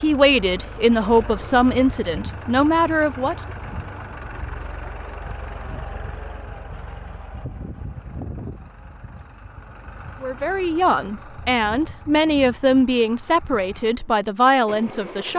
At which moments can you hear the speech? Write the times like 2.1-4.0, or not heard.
0.0-3.4, 10.2-15.3.